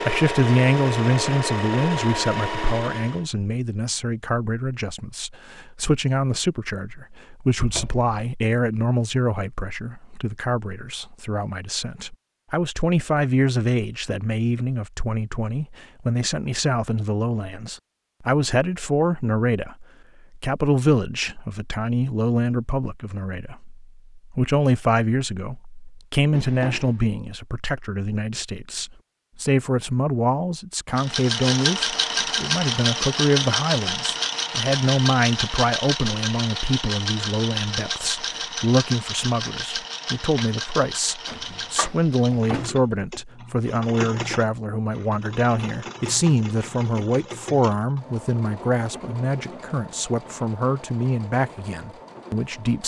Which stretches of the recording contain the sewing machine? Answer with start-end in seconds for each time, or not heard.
0.0-3.2, 30.9-52.8.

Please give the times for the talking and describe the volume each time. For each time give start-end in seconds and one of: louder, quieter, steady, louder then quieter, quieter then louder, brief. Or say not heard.
0.0-52.8 steady.